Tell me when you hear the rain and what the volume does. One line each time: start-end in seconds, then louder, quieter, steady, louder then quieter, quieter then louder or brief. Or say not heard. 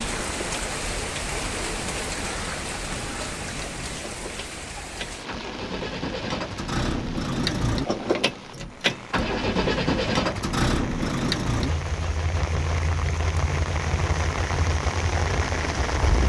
0.0-16.2 quieter then louder.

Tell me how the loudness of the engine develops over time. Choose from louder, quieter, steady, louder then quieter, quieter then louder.
louder then quieter.